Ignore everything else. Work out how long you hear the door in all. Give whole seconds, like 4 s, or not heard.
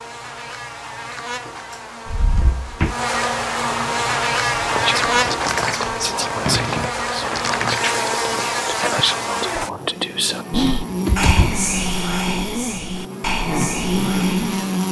4 s.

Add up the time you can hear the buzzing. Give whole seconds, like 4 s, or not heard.
15 s.